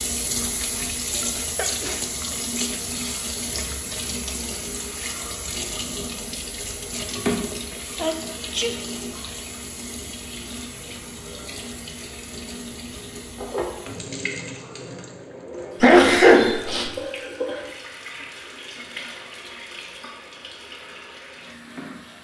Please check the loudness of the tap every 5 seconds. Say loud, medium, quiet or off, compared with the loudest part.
loud, loud, medium, medium, medium.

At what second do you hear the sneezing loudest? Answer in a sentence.
The volume of the sneezing peaks at 16 seconds.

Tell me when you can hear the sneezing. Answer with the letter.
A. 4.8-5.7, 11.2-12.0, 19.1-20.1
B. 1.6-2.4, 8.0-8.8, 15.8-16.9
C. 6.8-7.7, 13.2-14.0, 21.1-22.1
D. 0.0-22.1
B.